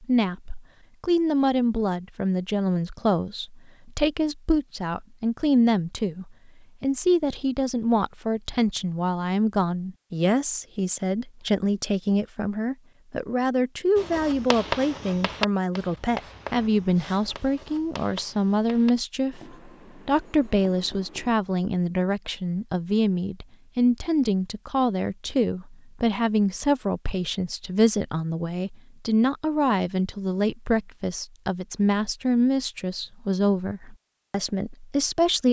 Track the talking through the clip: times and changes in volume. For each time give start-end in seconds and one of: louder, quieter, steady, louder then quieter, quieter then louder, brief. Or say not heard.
0.0-35.4 steady.